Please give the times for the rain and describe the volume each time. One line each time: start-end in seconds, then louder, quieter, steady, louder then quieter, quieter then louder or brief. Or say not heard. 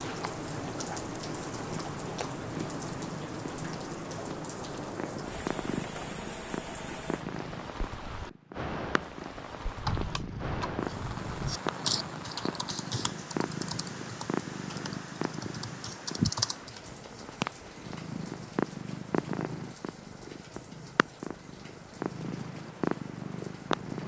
0.0-24.0 quieter.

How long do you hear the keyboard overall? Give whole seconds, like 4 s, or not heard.
7 s.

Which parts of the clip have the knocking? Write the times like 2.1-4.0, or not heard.
not heard.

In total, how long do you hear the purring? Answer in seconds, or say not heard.
24 s.